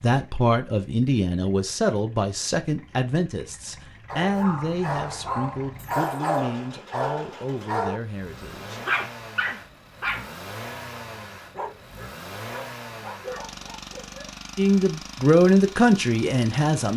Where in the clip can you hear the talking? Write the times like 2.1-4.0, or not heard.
0.0-9.1, 14.6-16.9.